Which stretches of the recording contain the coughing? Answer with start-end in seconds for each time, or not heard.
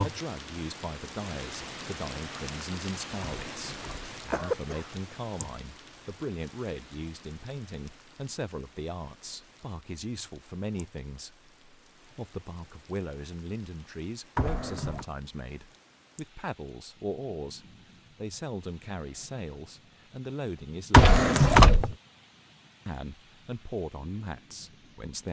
3.2-5.0, 14.3-15.1, 20.9-21.9.